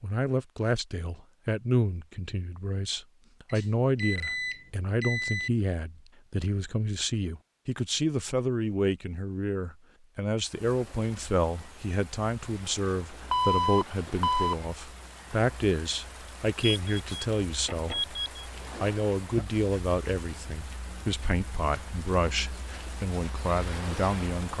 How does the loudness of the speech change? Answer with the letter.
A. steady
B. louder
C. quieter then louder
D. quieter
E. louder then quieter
A.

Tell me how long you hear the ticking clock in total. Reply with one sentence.
You can't hear the ticking clock here.